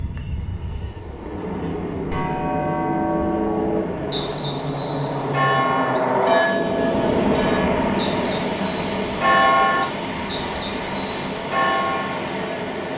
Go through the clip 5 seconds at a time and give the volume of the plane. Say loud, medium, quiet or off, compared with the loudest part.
medium, loud, medium.